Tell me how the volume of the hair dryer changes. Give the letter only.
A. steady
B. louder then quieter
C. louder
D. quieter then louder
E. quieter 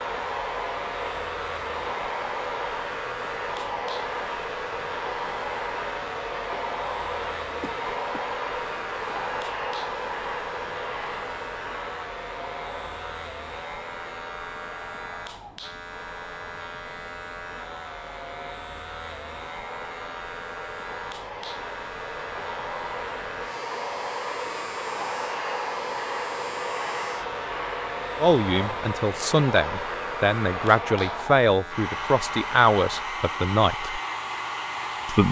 D.